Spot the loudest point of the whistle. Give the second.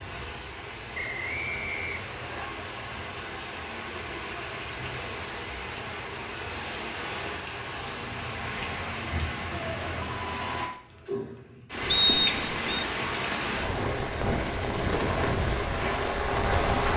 12 s.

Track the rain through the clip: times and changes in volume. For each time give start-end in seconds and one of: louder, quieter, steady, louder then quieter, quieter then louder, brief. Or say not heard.
0.0-16.9 louder.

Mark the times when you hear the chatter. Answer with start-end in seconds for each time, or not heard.
not heard.